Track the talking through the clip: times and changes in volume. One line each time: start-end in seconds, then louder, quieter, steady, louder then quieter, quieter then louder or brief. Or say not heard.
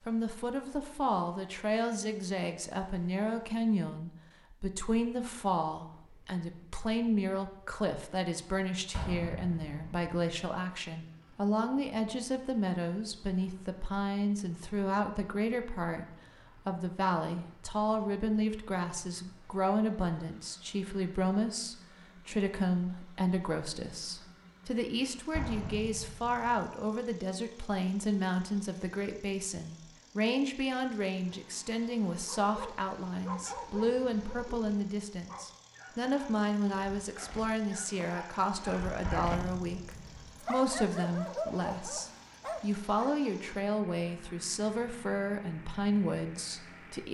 0.1-47.1 steady.